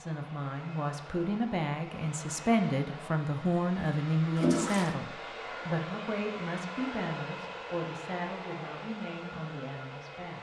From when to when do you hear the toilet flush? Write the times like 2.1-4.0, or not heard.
4.3-5.0.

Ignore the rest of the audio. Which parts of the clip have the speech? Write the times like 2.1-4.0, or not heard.
0.0-10.3.